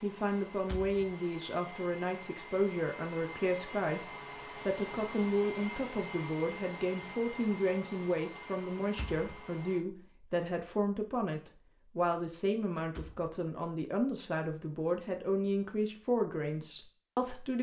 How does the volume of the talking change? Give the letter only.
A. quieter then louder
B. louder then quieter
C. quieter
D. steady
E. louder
D.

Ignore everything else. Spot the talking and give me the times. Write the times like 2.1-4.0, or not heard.
0.0-4.0, 4.7-17.5.